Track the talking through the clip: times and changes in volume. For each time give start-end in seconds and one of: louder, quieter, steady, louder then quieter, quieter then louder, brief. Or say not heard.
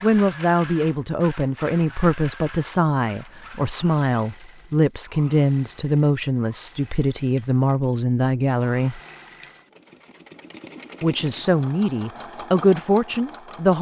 0.0-9.0 steady
11.0-13.7 brief.